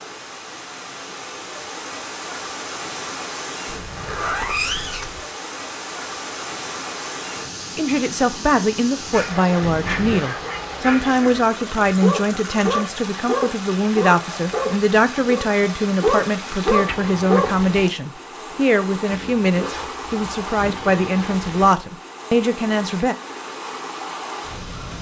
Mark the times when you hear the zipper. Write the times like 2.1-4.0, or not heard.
3.6-5.2, 9.6-10.3, 19.1-20.8.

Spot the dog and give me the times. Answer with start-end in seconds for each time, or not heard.
9.0-17.6.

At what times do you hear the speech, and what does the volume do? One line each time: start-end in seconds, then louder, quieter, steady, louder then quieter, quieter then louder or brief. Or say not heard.
7.8-23.1 steady.